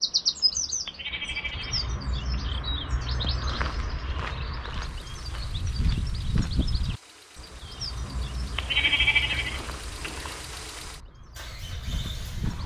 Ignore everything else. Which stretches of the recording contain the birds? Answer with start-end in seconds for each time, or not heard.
0.0-12.6.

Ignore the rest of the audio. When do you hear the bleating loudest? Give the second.
9 s.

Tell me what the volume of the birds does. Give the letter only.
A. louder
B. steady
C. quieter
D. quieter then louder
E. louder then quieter
C.